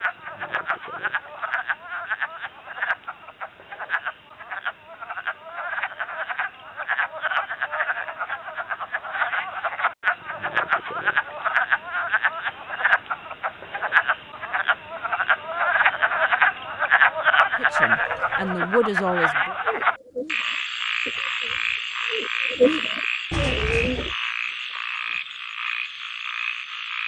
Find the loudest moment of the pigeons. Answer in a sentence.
The volume of the pigeons peaks at 23 seconds.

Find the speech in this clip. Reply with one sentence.
The speech can be heard from 17.6 to 19.6 s.